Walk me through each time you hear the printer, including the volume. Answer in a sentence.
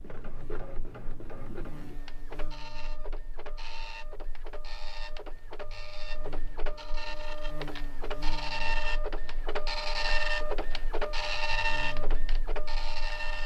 You can hear the printer from 0.0 to 13.4 s, getting louder.